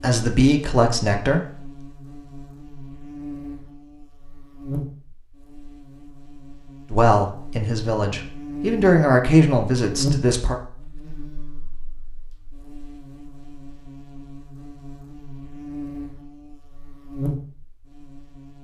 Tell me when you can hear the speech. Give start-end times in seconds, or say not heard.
0.0-1.4, 6.9-10.6.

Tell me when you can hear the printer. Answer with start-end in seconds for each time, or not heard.
not heard.